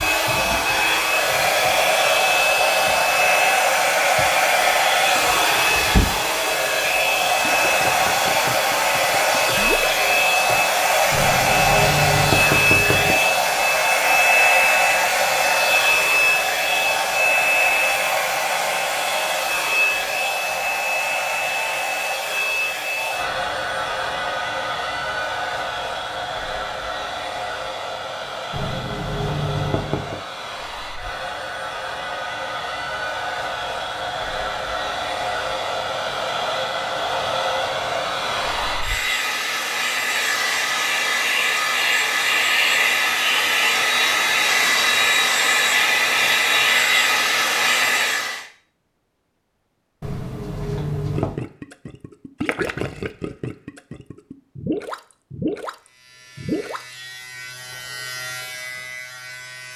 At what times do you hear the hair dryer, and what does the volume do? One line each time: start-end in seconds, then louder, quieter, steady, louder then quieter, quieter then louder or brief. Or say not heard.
0.0-48.5 quieter then louder.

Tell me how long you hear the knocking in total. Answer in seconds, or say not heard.
5 s.